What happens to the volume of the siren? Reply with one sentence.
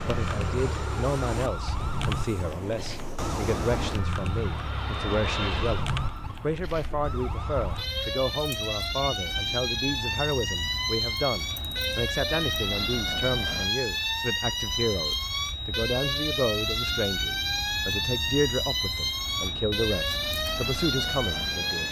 The loudness of the siren goes up.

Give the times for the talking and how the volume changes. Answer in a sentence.
The talking can be heard from 0.1 to 21.8 s, at a steady volume.